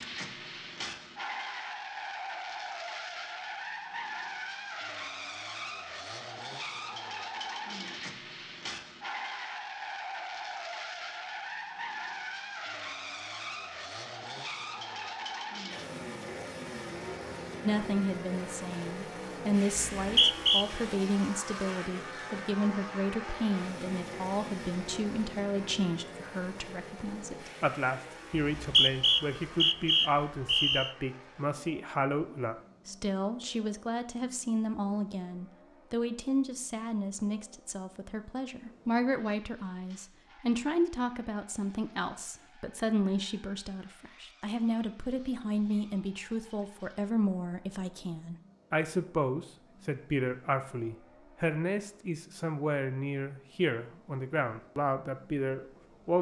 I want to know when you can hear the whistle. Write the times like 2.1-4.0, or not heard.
19.8-20.6, 28.4-30.9.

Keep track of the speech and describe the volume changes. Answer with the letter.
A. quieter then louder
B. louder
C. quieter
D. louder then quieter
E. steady
E.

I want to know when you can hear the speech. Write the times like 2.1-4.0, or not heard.
17.6-56.1.